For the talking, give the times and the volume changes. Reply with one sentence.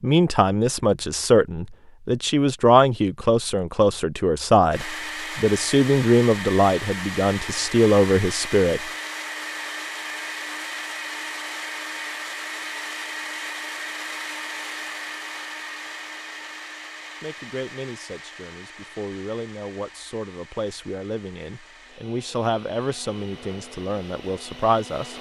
You can hear the talking from 0.0 to 8.8 s, at a steady volume; and from 17.2 to 25.1 s, getting louder.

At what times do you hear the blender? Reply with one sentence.
The blender can be heard from 4.7 to 25.1 s.